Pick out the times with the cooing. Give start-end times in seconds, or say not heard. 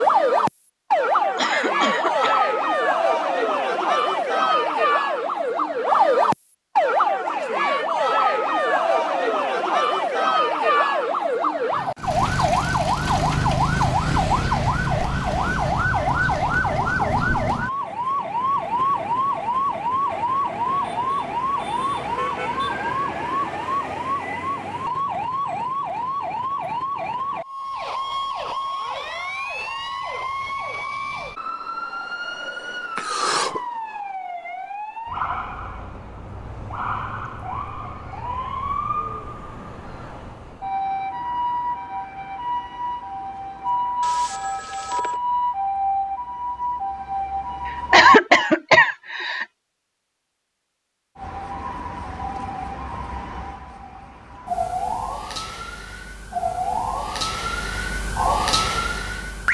not heard.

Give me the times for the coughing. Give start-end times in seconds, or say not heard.
1.4-2.4, 33.0-33.6, 47.6-49.5.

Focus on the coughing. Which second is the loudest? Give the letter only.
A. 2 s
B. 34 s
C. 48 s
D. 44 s
C.